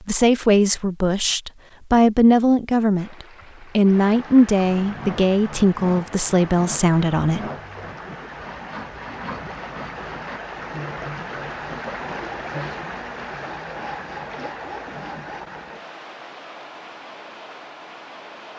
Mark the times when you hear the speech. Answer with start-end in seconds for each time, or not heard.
0.1-7.5.